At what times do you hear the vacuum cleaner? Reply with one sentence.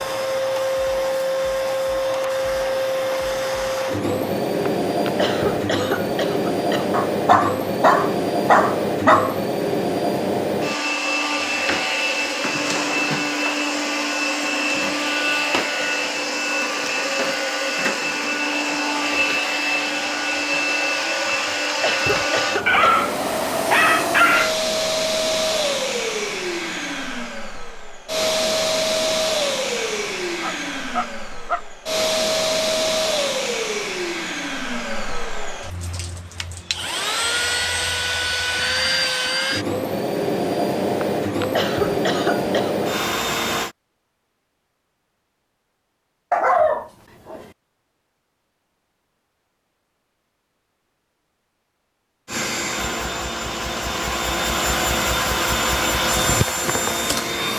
You can hear the vacuum cleaner from 0.0 to 43.8 s and from 52.2 to 57.5 s.